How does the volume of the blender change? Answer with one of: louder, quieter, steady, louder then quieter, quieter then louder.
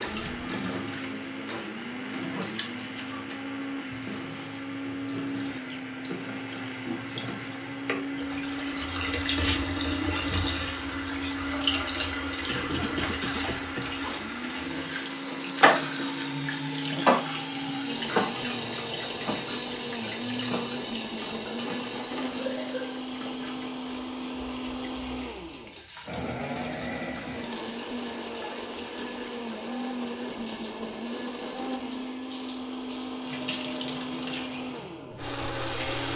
steady.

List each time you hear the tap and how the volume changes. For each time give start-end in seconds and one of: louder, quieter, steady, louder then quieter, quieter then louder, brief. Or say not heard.
0.0-36.1 louder then quieter.